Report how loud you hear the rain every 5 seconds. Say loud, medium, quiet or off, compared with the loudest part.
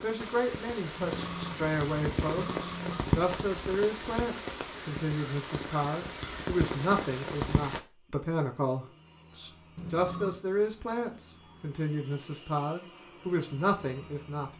loud, loud, off.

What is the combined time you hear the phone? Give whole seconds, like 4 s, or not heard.
3 s.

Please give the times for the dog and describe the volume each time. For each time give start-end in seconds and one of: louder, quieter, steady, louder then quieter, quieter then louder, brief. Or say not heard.
not heard.